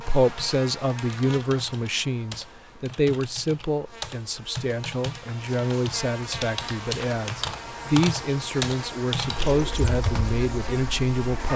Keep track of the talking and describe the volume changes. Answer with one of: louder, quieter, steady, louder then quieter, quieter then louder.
steady.